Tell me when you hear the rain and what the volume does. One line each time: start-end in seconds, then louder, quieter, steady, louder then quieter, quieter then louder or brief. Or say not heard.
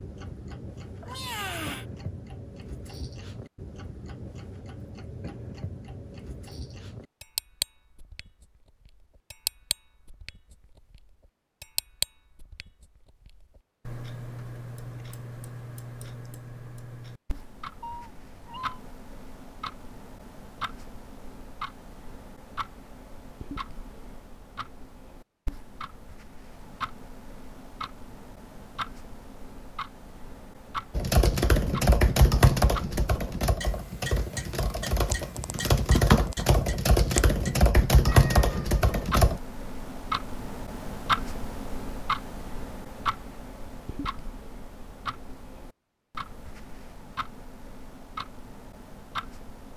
not heard.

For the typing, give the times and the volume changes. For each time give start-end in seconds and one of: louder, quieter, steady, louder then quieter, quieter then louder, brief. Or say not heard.
30.9-39.4 quieter then louder.